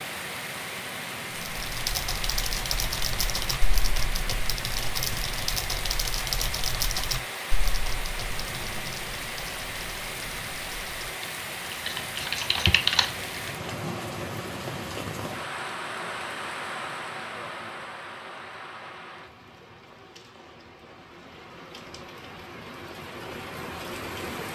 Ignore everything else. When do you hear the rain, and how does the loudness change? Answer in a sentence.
The rain can be heard from 0.0 to 24.5 s, getting quieter.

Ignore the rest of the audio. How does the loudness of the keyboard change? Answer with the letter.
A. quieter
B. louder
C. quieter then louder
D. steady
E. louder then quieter
C.